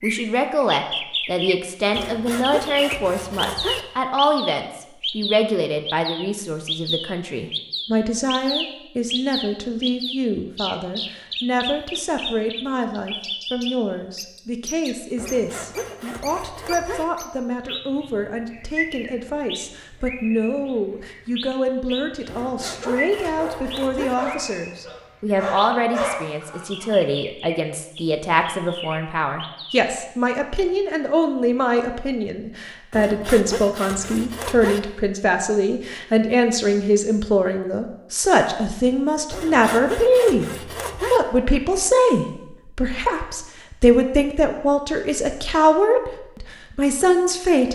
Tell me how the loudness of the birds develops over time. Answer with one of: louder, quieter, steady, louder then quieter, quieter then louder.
quieter.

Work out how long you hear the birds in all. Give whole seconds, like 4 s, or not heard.
30 s.